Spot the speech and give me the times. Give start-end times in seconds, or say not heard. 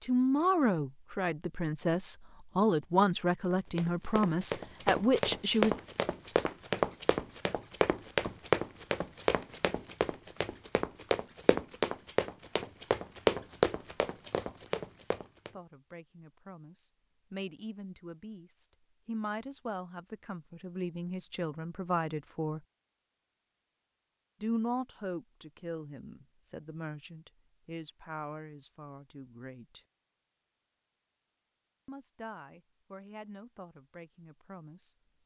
0.0-5.8, 15.5-22.6, 24.4-29.9, 31.9-35.0.